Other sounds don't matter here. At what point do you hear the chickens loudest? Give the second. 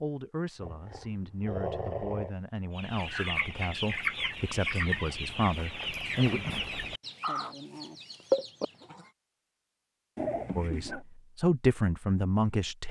8 s.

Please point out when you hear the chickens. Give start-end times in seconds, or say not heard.
2.8-9.1.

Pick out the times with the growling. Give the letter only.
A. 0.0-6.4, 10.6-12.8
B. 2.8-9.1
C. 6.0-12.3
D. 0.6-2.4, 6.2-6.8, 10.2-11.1
D.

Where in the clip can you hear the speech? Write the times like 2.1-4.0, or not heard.
0.0-6.4, 10.6-12.8.